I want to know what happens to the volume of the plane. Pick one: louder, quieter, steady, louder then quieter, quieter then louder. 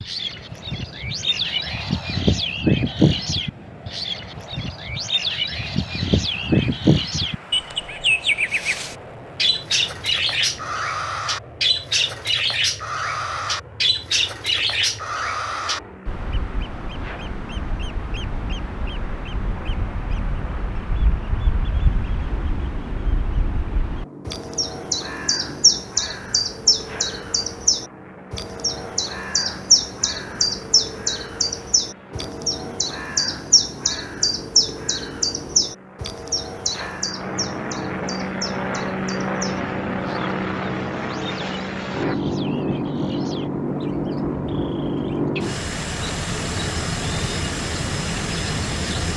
louder.